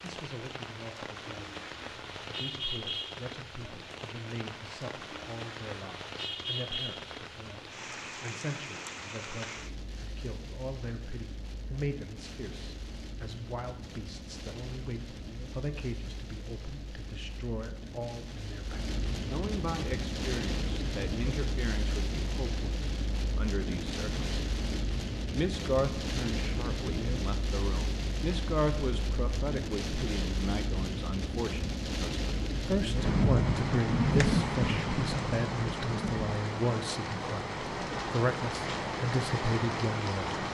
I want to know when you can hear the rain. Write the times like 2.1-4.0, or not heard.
0.0-40.4.